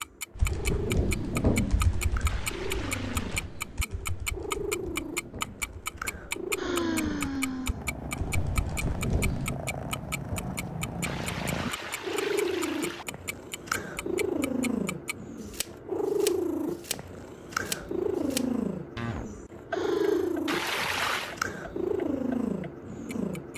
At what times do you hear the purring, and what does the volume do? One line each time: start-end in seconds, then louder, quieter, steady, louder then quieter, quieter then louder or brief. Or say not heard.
0.0-23.5 louder.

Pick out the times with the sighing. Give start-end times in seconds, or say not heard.
6.5-7.8, 19.7-20.4.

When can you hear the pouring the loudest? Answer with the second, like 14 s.
21 s.